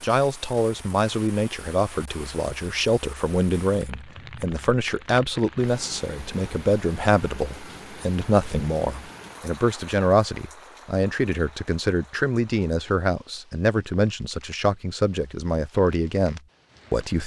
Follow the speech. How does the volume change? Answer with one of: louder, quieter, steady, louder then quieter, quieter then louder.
steady.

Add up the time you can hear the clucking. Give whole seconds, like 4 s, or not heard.
not heard.